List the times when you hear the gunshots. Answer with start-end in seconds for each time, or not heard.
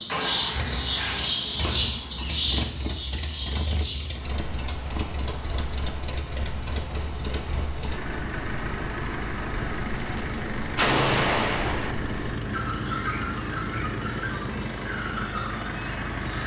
9.9-11.9.